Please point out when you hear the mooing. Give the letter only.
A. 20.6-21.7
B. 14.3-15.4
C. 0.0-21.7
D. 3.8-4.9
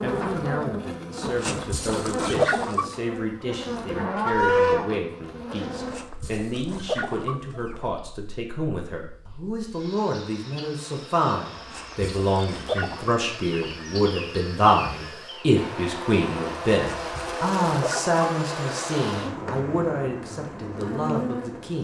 D.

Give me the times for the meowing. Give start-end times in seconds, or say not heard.
not heard.